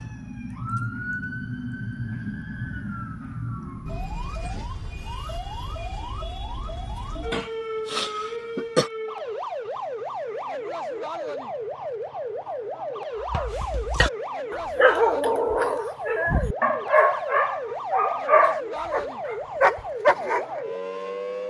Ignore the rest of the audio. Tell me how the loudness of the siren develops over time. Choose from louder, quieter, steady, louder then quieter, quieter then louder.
steady.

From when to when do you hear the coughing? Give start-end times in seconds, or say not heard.
7.3-8.9.